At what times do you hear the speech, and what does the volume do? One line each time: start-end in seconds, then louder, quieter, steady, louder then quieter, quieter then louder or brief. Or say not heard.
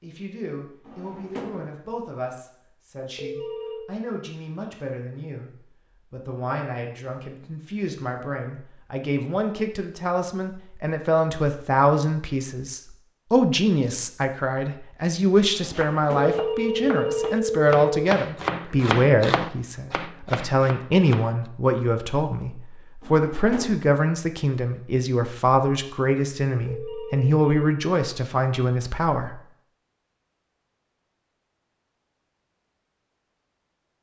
0.0-29.4 louder.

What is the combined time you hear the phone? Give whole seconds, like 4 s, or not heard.
4 s.